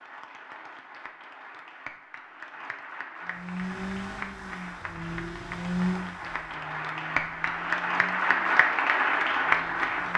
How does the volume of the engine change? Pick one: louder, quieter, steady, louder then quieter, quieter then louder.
louder then quieter.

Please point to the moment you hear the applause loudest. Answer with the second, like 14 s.
9 s.